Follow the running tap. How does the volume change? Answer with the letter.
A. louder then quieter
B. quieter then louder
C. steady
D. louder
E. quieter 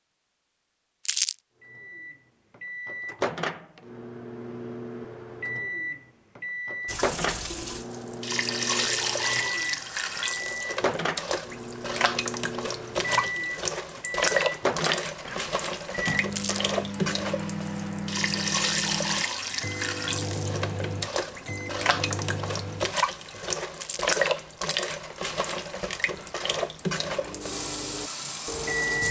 C.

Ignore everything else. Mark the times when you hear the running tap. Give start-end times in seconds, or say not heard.
6.8-29.0.